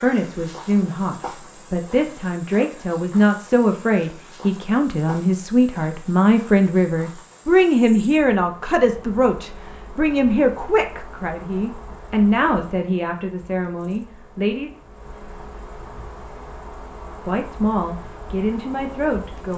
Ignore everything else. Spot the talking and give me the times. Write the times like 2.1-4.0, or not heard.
0.0-14.7, 17.1-19.5.